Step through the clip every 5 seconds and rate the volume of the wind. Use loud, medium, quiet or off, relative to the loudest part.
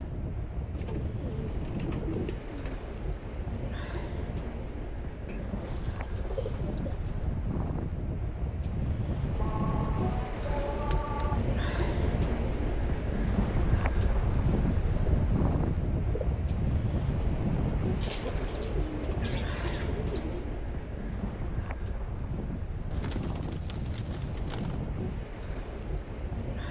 medium, loud, loud, loud, medium, medium.